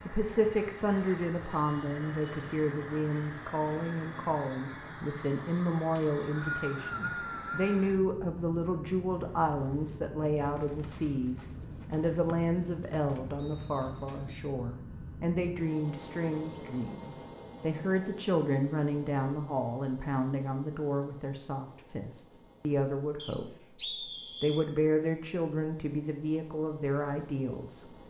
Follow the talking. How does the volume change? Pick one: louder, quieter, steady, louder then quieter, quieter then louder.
steady.